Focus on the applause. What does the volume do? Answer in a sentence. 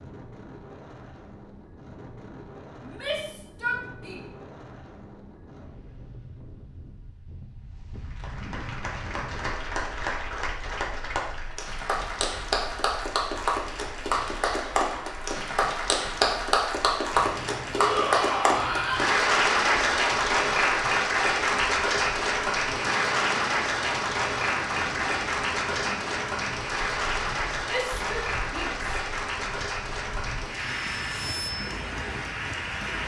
The volume of the applause goes up, then down.